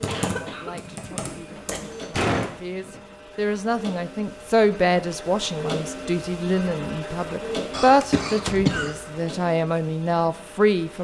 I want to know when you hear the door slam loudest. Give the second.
2 s.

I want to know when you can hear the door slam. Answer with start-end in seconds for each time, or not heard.
1.3-3.0, 8.0-8.8.